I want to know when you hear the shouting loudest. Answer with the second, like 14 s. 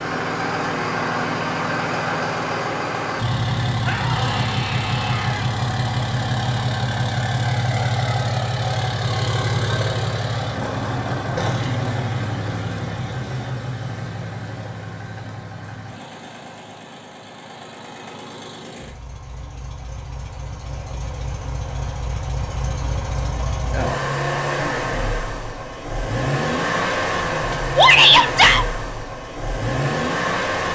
28 s.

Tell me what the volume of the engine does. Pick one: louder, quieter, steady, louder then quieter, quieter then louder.
quieter then louder.